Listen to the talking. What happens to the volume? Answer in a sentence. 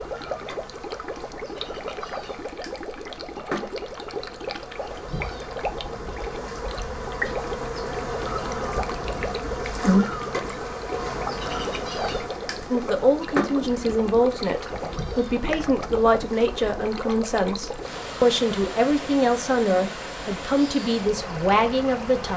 The volume of the talking stays about the same.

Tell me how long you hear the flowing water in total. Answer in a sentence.
You can hear the flowing water for 22 seconds altogether.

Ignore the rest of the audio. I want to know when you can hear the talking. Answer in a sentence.
You can hear the talking from 12.7 to 22.3 s.